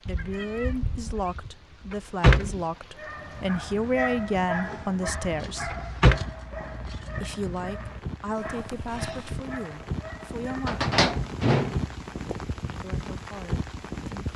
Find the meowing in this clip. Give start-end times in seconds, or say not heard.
0.1-1.4, 8.4-9.4.